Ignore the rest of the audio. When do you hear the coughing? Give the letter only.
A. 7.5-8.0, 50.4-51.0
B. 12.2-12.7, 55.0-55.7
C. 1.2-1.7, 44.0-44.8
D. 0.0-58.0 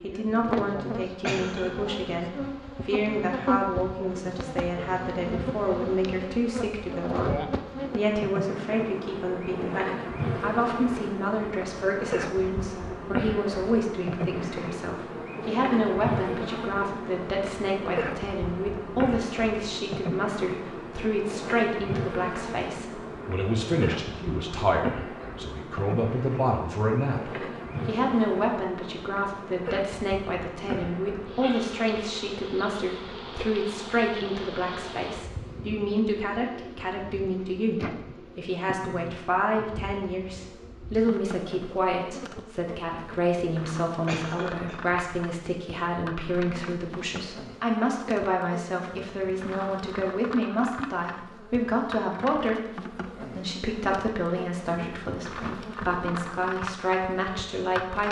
C.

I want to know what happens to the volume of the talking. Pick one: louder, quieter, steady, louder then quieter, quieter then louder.
steady.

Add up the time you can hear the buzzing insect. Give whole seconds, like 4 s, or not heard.
58 s.